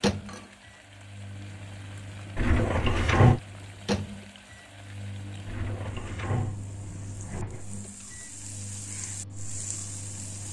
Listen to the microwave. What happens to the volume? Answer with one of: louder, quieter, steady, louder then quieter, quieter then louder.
louder then quieter.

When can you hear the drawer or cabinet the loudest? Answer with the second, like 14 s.
3 s.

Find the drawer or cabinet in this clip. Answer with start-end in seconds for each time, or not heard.
2.4-3.4, 5.5-7.7.